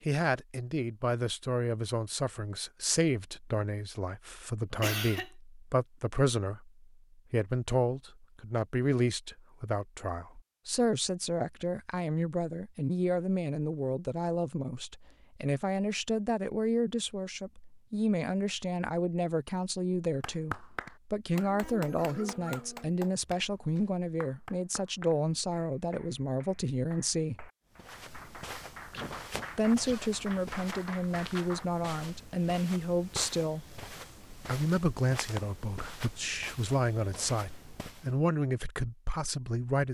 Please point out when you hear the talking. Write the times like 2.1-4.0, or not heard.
0.0-27.5, 29.6-33.6, 34.3-39.8.